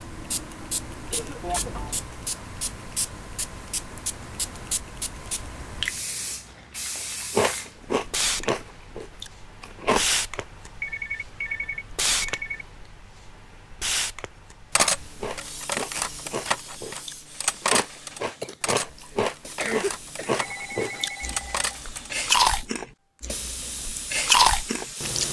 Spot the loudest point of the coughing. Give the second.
20 s.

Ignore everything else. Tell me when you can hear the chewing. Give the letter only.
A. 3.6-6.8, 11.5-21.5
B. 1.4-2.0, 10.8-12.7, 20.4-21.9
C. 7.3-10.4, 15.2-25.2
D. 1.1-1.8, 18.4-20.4
C.